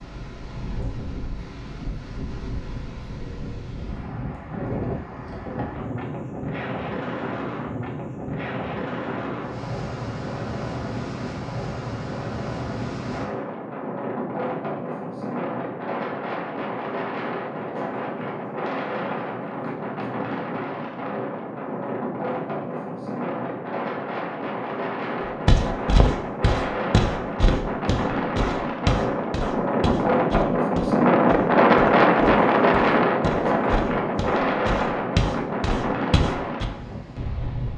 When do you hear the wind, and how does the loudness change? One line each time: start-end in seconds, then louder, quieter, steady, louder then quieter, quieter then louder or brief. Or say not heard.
0.0-37.7 louder.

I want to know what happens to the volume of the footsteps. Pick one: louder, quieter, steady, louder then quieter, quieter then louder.
quieter then louder.